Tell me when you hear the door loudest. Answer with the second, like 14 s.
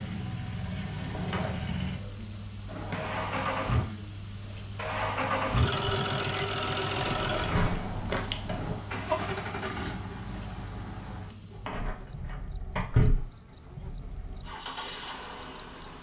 13 s.